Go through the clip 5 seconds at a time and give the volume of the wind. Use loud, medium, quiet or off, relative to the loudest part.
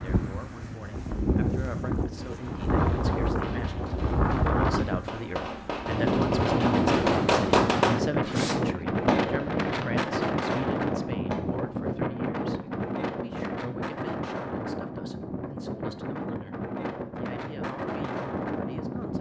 loud, loud, loud, medium.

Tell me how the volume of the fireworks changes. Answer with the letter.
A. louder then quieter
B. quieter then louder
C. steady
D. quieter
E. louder
A.